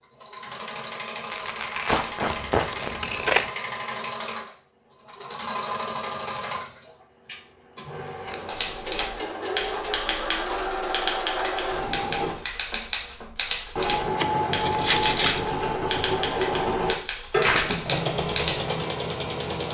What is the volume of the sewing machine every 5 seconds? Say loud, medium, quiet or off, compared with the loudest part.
medium, medium, loud, loud.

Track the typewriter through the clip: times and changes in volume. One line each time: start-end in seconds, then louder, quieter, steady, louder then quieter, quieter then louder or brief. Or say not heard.
8.4-18.6 steady.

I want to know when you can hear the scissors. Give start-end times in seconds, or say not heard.
2.2-3.5, 8.0-8.9, 14.2-15.4.